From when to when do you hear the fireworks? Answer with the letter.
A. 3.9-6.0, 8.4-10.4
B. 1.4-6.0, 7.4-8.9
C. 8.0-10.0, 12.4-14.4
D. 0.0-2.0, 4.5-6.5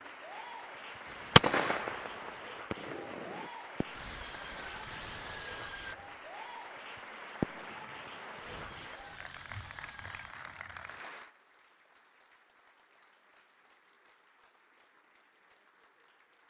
B.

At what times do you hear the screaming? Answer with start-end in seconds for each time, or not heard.
3.9-6.0, 8.4-10.4.